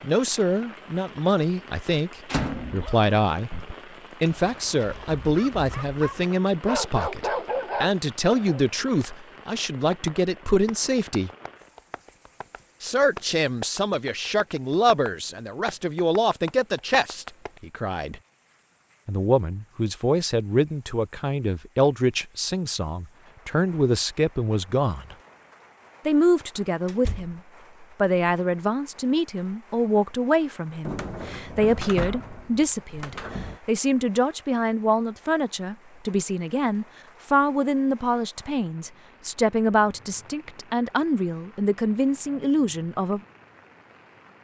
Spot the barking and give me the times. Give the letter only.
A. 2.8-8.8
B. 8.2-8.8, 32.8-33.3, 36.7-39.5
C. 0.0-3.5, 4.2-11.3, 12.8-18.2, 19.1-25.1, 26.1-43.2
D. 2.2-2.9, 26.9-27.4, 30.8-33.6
A.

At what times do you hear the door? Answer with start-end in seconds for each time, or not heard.
2.2-2.9, 26.9-27.4, 30.8-33.6.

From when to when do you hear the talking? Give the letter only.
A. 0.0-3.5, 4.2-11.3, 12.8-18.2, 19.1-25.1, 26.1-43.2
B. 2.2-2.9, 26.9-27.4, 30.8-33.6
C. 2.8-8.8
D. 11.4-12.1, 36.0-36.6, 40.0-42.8
A.